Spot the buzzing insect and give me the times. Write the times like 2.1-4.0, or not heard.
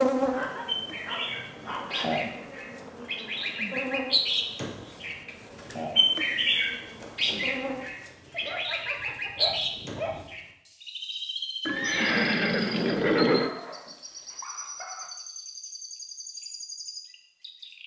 0.0-7.8.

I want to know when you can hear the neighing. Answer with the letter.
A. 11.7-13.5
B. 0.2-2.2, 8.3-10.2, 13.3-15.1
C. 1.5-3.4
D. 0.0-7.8
A.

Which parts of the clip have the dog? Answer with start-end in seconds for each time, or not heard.
0.2-2.2, 8.3-10.2, 13.3-15.1.